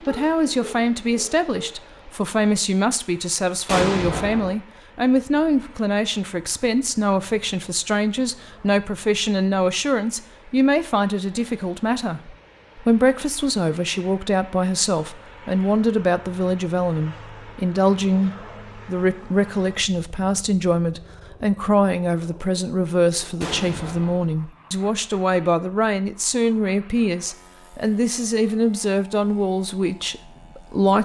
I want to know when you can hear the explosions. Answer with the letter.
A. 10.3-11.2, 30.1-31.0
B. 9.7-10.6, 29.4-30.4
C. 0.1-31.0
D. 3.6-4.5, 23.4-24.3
D.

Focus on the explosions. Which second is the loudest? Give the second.
4 s.